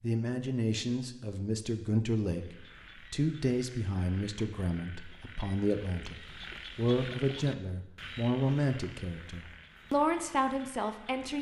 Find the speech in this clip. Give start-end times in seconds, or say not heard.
0.0-11.3.